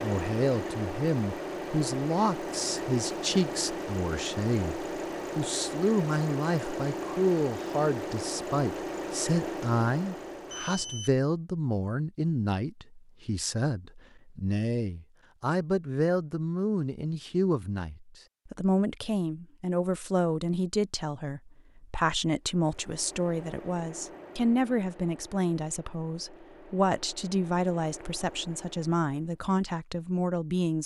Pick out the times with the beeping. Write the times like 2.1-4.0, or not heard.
10.4-11.1.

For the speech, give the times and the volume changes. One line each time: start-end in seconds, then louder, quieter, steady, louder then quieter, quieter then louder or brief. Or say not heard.
0.0-30.8 steady.